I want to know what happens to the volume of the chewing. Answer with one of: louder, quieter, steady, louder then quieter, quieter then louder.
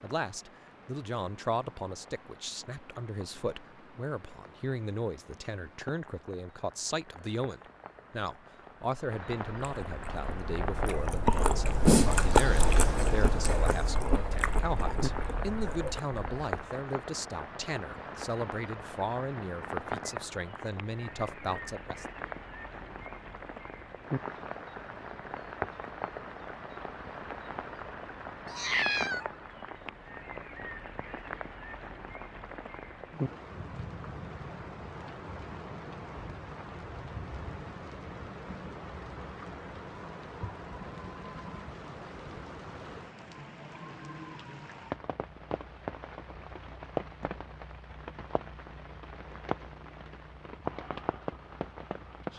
louder then quieter.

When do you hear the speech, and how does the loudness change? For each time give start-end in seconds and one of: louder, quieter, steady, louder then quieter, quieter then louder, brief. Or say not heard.
0.0-22.1 steady.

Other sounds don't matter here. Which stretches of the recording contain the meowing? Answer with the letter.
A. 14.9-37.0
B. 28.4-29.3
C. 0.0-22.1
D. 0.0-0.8
B.